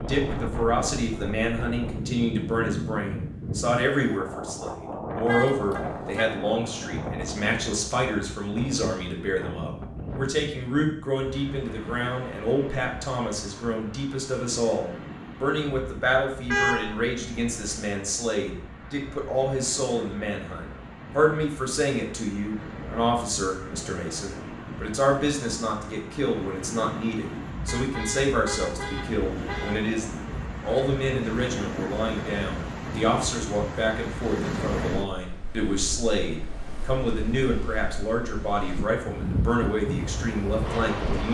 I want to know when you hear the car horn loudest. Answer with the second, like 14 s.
17 s.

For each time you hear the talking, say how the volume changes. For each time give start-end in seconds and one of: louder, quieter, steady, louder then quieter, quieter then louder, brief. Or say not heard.
0.1-41.2 steady.